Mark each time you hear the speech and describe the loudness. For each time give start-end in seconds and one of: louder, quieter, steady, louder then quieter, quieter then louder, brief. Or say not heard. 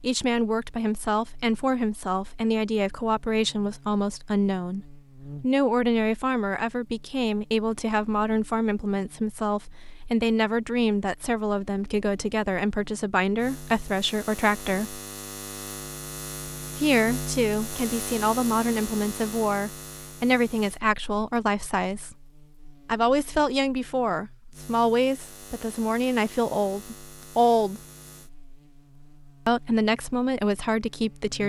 0.0-15.0 steady
16.8-22.1 steady
22.9-27.8 steady
29.4-31.4 brief.